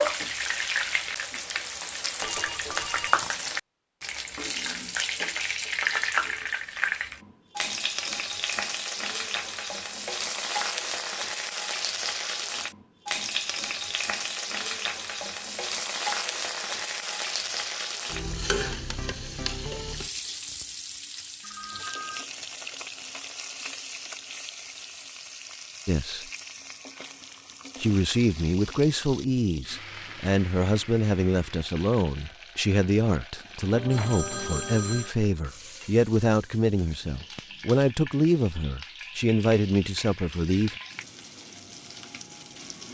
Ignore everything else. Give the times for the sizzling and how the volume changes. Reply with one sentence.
You can hear the sizzling from 0.0 to 42.8 s, getting quieter.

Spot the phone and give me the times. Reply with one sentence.
The phone can be heard from 2.2 to 3.3 s, from 21.4 to 22.2 s and from 33.7 to 35.1 s.